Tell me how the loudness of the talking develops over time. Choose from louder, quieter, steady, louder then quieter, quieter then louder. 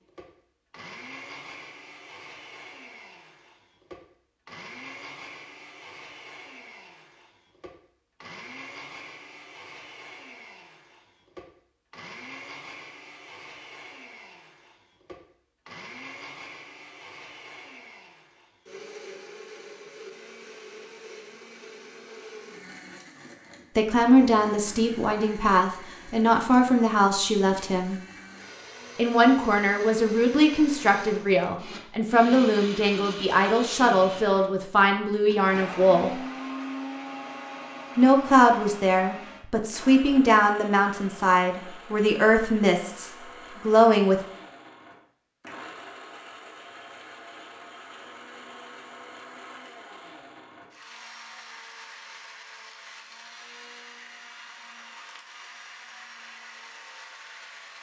steady.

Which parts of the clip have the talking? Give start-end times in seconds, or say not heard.
23.8-28.0, 28.9-36.2, 38.0-44.2.